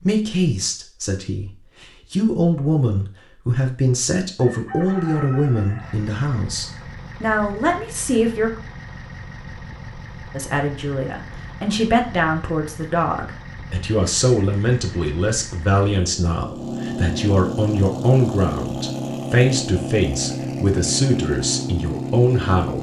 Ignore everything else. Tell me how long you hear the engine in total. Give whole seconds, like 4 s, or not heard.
17 s.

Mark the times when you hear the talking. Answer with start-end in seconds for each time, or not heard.
0.0-8.5, 10.3-22.7.